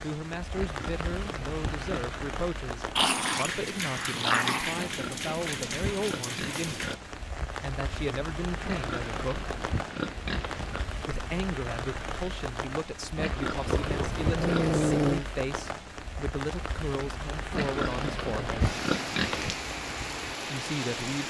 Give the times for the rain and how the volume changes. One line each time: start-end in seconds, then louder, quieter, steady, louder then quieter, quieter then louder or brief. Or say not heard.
0.0-21.2 steady.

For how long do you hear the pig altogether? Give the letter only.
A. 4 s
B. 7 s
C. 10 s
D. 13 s
C.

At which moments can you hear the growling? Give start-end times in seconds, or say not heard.
3.0-4.8, 13.7-15.2.